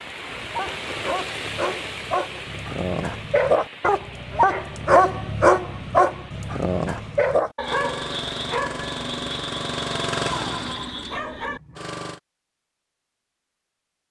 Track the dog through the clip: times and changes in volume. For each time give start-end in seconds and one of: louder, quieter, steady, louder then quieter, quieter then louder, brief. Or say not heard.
0.3-11.6 louder then quieter.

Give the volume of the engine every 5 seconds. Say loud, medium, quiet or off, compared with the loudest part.
off, loud, loud.